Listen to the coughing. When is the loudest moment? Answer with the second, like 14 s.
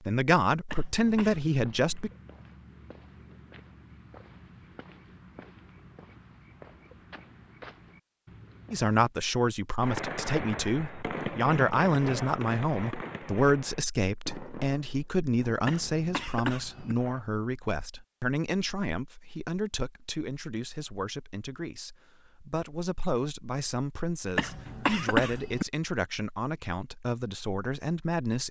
25 s.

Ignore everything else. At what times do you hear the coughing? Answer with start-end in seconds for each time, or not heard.
0.7-1.4, 15.7-16.9, 24.4-25.6.